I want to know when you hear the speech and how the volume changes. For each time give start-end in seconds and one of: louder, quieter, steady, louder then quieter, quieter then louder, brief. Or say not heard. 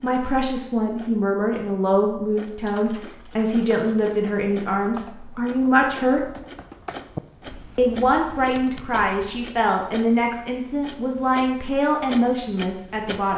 0.0-6.2 steady
7.8-13.3 steady.